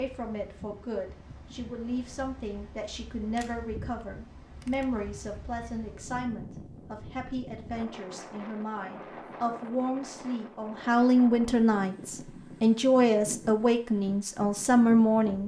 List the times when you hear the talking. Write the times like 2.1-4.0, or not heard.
0.0-15.4.